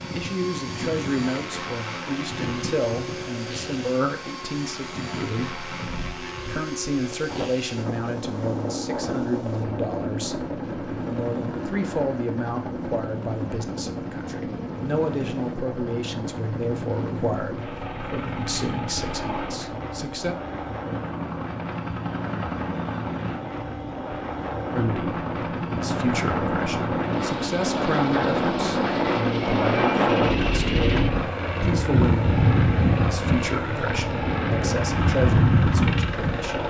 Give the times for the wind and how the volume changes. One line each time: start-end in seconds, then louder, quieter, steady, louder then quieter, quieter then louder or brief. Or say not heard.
0.0-36.5 louder.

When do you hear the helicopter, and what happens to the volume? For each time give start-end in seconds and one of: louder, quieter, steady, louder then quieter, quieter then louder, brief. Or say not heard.
0.0-36.6 louder.